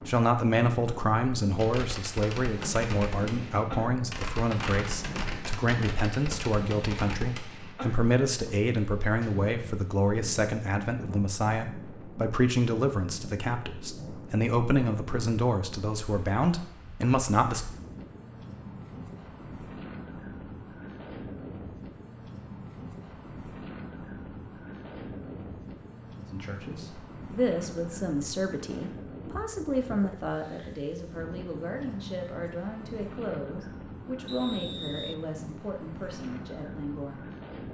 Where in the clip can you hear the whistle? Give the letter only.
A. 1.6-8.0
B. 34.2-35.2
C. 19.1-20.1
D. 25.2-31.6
B.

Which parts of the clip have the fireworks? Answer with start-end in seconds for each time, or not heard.
1.6-8.0.